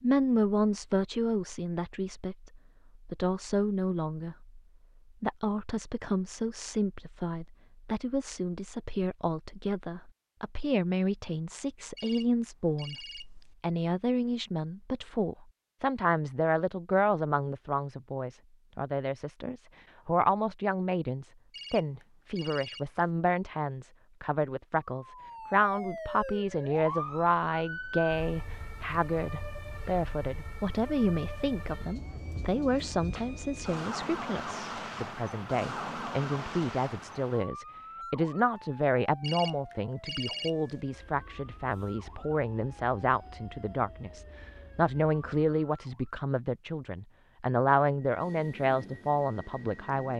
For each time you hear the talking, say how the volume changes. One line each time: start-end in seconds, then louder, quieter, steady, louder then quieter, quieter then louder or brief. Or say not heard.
0.0-4.5 quieter then louder
5.2-50.1 steady.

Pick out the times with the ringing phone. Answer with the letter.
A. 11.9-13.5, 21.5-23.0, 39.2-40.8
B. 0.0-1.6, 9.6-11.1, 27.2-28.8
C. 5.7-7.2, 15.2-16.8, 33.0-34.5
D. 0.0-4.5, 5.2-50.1
A.